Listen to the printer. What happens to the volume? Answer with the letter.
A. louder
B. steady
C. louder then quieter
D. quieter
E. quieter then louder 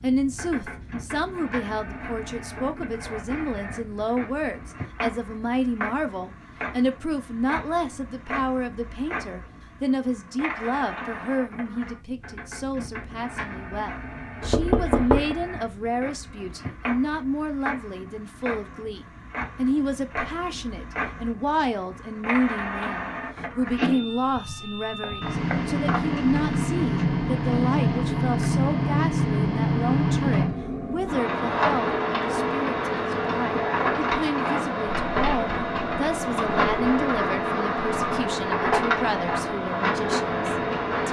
A.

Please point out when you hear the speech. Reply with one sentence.
The speech can be heard from 0.0 to 41.0 s.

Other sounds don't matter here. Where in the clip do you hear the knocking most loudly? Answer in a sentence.
The loudest moment of the knocking is at 15 seconds.